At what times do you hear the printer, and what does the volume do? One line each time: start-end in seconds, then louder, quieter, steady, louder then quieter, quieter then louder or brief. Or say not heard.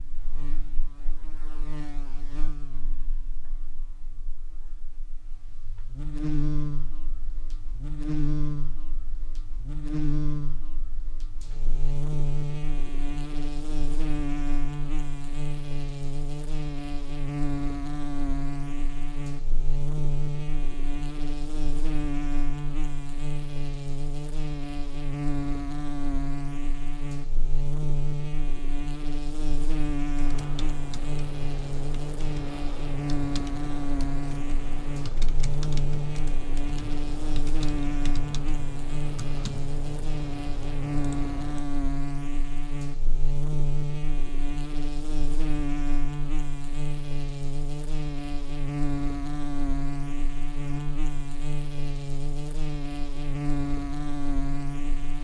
not heard.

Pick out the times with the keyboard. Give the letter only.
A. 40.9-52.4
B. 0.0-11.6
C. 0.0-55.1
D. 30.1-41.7
D.